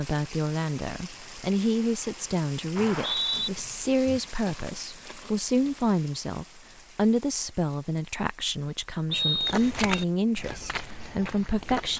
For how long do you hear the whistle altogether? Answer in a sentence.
You can hear the whistle for 2 seconds altogether.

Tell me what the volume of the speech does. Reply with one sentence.
The volume of the speech stays about the same.